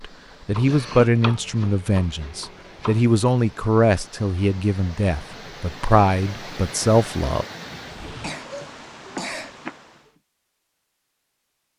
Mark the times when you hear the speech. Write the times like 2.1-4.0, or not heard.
0.0-7.5.